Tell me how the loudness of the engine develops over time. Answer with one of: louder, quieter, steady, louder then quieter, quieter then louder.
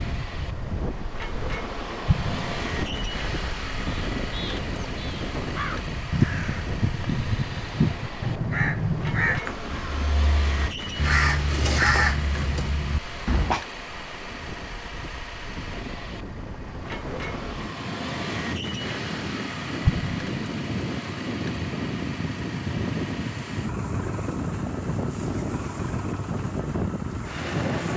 steady.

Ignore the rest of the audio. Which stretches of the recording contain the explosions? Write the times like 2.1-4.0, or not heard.
2.0-2.7, 19.9-20.4.